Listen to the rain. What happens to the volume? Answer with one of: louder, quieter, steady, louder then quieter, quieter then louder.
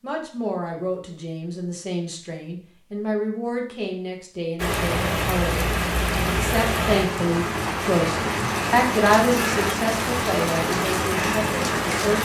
steady.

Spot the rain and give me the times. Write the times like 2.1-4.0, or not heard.
4.5-12.1.